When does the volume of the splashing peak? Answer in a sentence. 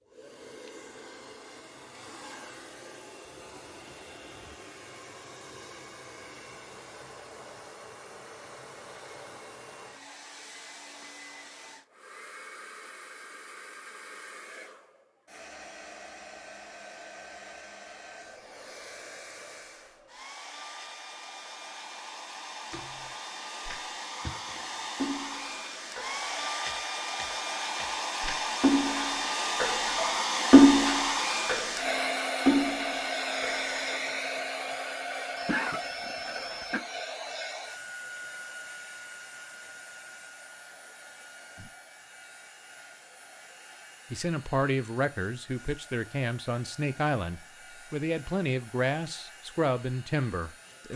The volume of the splashing peaks at 31 seconds.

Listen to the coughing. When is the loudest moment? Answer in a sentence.
The volume of the coughing peaks at 36 seconds.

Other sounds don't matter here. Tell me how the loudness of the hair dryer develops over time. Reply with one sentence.
The volume of the hair dryer goes up, then down.